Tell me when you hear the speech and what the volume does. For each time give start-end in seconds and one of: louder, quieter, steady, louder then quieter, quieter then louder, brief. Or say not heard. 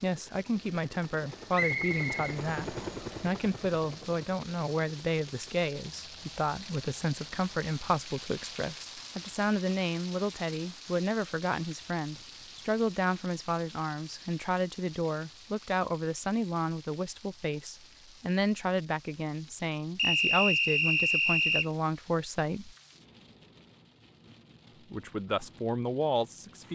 0.0-22.8 steady
24.9-26.6 brief.